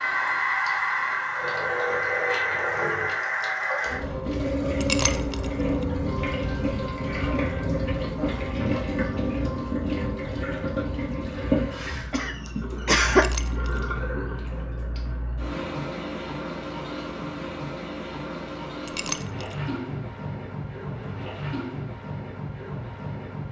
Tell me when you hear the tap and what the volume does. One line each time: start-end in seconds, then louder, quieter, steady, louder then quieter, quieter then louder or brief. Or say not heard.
0.0-23.4 quieter.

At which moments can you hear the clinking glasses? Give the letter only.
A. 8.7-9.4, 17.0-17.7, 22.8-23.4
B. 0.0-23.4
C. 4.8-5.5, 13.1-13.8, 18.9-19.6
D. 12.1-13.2
C.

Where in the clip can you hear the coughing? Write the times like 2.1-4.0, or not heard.
12.1-13.2.